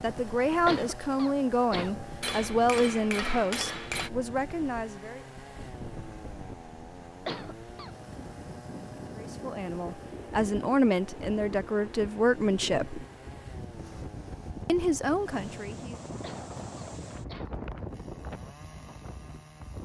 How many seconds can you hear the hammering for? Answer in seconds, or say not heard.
2 s.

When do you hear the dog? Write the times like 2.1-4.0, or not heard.
not heard.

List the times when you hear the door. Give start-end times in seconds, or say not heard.
not heard.